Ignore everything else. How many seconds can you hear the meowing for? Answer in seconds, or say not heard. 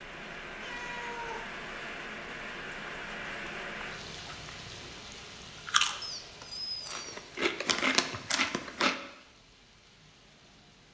2 s.